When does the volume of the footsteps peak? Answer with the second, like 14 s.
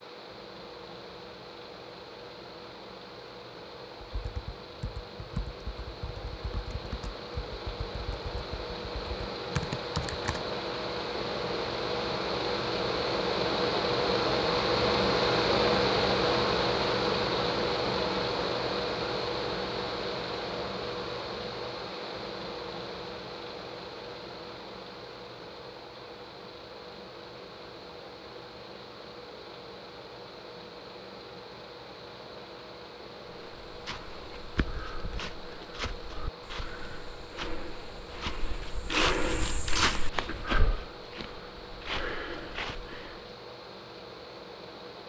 39 s.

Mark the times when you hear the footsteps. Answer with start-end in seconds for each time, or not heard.
33.3-43.4.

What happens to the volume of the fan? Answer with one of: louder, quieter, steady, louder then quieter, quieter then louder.
louder then quieter.